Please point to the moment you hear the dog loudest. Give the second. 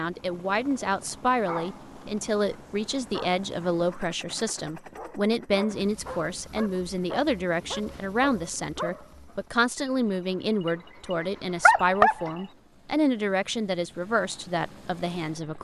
12 s.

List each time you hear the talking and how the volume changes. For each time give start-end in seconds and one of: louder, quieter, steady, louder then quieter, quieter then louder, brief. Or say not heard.
0.0-15.5 steady.